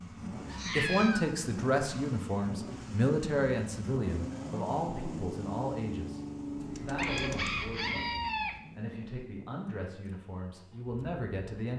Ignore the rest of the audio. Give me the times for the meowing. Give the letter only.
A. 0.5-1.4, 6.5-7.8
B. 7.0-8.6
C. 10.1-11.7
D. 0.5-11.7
A.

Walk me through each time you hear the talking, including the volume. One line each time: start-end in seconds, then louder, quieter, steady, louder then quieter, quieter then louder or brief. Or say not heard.
0.5-11.7 quieter.